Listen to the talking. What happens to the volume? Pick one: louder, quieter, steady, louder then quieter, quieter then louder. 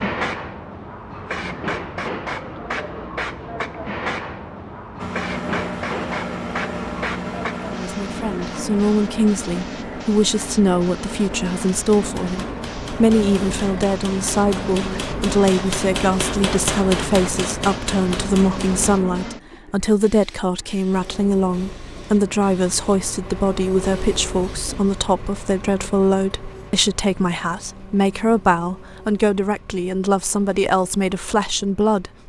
steady.